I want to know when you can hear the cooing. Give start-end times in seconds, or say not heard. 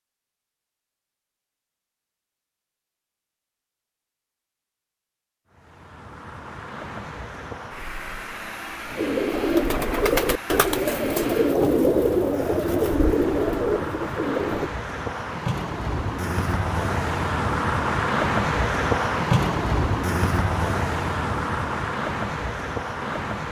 8.9-14.7.